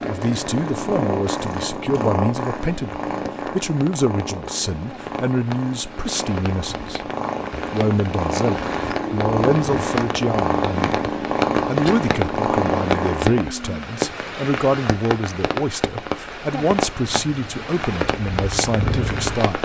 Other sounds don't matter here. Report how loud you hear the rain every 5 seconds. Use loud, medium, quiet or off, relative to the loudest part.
quiet, medium, loud, loud.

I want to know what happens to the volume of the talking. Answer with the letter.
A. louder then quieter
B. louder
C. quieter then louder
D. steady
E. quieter
D.